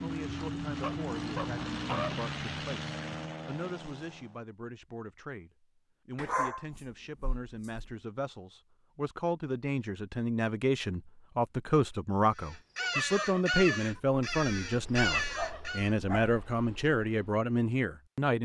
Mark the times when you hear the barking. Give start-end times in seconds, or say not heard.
0.8-2.2, 6.2-8.0, 15.2-16.4.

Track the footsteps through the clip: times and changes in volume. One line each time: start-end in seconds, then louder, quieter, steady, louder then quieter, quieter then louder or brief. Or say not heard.
not heard.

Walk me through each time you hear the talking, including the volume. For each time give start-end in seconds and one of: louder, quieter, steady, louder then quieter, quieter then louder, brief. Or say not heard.
0.0-18.4 louder.